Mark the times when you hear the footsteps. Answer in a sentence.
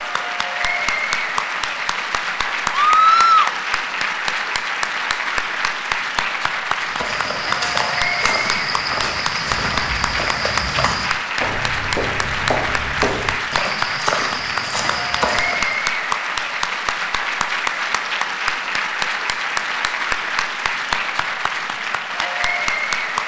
You can hear the footsteps from 6.8 to 15.9 s.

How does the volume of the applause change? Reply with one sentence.
The volume of the applause stays about the same.